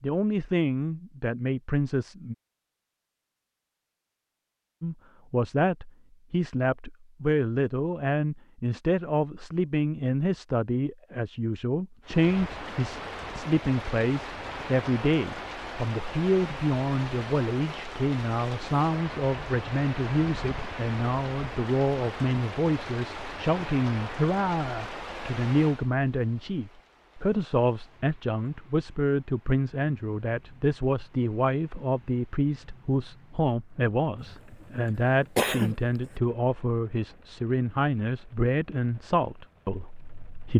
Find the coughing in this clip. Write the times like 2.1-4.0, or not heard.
34.2-35.8.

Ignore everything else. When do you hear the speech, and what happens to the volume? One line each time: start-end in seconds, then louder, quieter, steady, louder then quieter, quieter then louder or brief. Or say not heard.
0.0-2.4 brief
4.8-40.5 steady.